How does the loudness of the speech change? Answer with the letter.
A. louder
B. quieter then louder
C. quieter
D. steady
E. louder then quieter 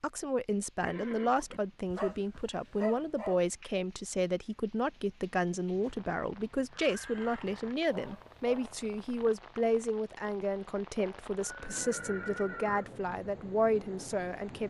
D.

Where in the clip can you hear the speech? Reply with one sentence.
The speech can be heard from 0.0 to 14.6 s.